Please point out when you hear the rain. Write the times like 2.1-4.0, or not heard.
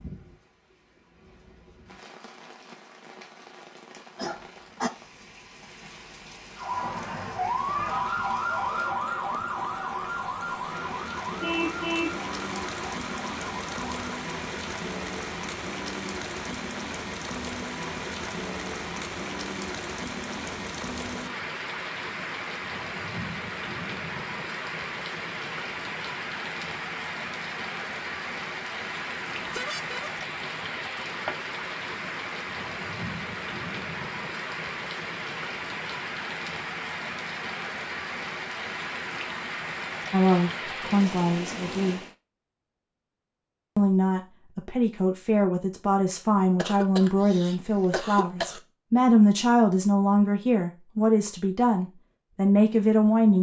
0.0-42.1.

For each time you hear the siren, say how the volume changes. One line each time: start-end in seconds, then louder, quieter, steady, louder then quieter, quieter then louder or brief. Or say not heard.
6.5-14.1 quieter.